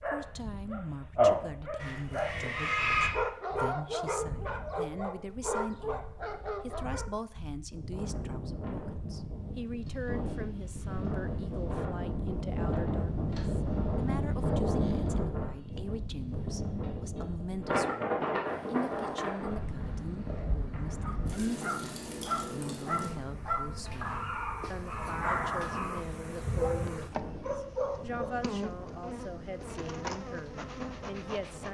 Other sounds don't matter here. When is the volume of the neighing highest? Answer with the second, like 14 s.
3 s.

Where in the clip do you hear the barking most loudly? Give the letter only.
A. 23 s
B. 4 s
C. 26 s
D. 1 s
D.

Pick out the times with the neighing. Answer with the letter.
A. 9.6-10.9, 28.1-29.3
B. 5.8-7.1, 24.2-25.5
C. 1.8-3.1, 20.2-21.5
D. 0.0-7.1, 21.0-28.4
C.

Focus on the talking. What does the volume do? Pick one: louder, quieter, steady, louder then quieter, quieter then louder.
steady.